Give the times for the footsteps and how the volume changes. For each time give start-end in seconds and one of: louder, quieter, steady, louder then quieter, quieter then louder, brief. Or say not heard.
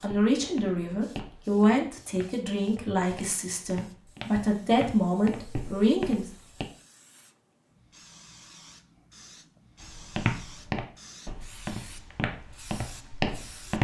0.0-6.7 quieter then louder
9.8-13.8 quieter then louder.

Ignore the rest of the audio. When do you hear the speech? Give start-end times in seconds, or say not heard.
0.0-6.2.